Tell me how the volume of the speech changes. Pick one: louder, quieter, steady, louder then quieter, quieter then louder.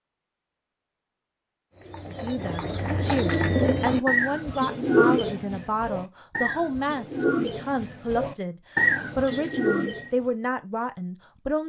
steady.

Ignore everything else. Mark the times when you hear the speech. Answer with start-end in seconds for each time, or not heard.
2.0-11.6.